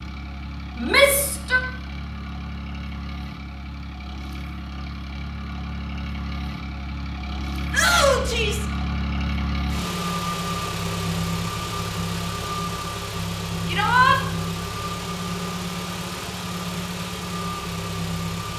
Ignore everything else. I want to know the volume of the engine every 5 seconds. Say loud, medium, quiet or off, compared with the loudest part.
medium, loud, loud, loud.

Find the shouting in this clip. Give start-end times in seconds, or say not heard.
0.8-1.6, 7.7-8.7, 13.7-14.2.